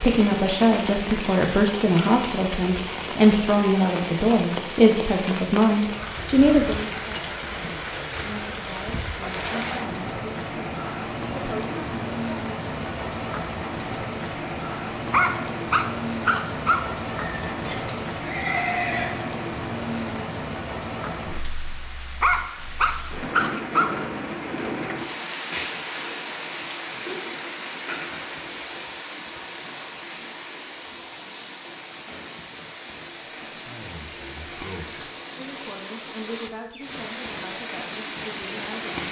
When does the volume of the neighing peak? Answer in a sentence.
The loudest moment of the neighing is at 19 seconds.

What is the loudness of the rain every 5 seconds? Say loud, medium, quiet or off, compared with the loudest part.
loud, loud, loud, loud, loud, loud, medium, loud.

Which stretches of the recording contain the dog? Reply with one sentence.
The dog can be heard from 15.1 to 16.9 s and from 22.2 to 23.9 s.